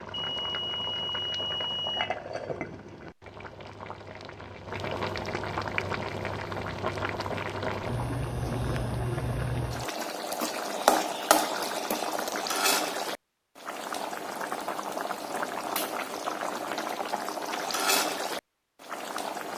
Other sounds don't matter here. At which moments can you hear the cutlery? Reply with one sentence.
The cutlery can't be heard in this clip.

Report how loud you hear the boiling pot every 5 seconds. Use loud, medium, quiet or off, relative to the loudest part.
medium, loud, loud, loud.